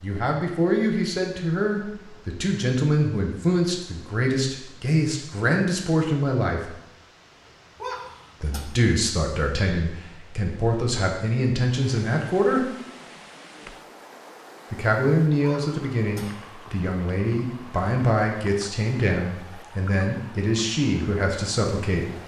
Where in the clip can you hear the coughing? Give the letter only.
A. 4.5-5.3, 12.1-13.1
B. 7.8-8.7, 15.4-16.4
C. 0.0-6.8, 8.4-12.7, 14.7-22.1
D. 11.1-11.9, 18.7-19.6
B.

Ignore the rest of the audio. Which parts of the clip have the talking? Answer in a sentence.
The talking can be heard from 0.0 to 6.8 s, from 8.4 to 12.7 s and from 14.7 to 22.1 s.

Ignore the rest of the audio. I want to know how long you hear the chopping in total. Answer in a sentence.
You can't hear the chopping here.